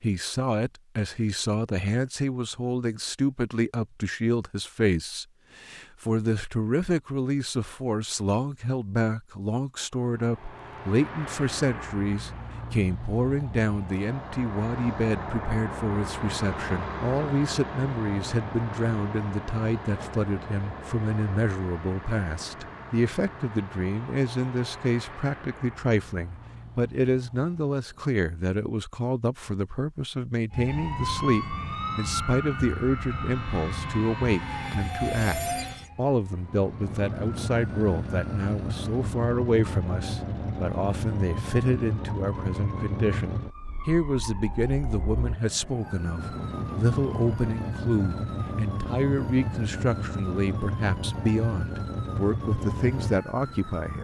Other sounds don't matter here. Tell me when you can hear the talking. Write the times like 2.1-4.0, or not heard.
0.0-53.9.